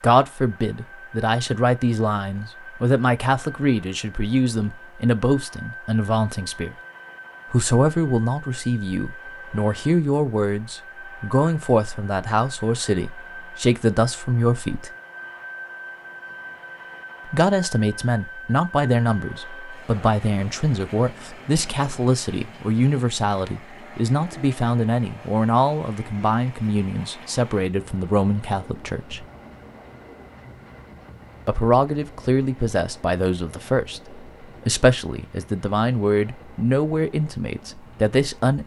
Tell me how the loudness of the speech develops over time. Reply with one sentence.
The loudness of the speech stays about the same.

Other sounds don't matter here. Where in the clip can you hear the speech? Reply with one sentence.
You can hear the speech from 0.0 to 6.8 s, from 7.5 to 14.9 s, from 17.3 to 29.2 s and from 31.4 to 38.6 s.